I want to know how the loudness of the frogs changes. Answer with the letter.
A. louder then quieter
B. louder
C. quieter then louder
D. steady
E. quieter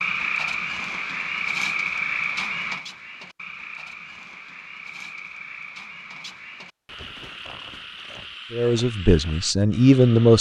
E.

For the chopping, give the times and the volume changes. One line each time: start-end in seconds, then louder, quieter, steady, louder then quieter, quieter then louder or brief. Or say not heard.
not heard.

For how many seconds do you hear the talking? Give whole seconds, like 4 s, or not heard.
2 s.